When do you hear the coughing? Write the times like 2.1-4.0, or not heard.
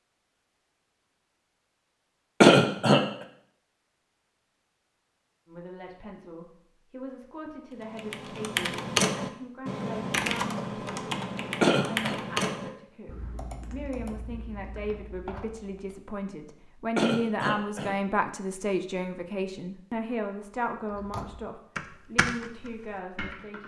2.4-3.0, 11.6-12.2, 16.9-17.9.